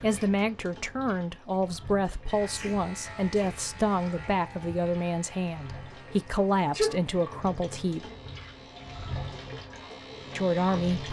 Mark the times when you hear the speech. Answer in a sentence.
The speech can be heard from 0.0 to 8.1 s and from 10.3 to 11.0 s.